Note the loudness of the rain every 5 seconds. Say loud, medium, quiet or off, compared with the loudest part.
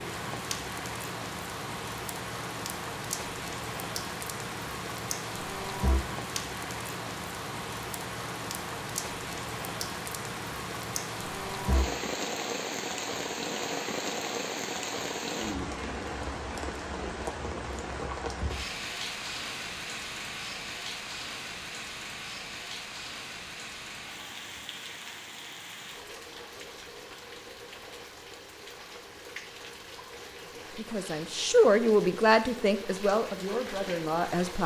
loud, loud, loud, loud, medium, medium, medium.